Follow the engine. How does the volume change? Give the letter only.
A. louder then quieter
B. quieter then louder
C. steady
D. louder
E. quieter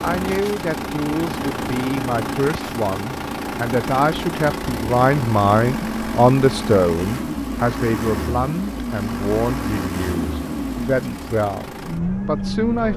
C.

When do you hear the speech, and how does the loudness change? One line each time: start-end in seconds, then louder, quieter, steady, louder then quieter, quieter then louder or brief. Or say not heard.
0.0-12.9 louder then quieter.